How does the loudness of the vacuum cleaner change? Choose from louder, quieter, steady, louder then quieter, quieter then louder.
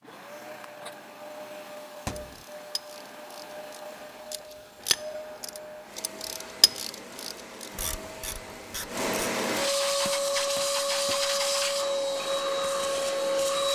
louder.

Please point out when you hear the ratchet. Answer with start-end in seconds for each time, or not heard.
2.1-9.1.